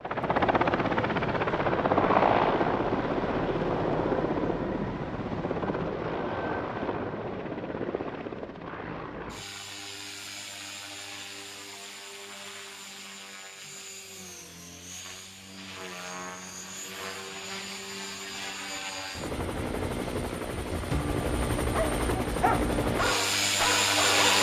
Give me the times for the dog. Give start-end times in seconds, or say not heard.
21.7-24.3.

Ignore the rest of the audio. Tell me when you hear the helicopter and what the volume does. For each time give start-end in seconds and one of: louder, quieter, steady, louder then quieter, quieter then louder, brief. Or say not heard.
0.0-24.3 quieter then louder.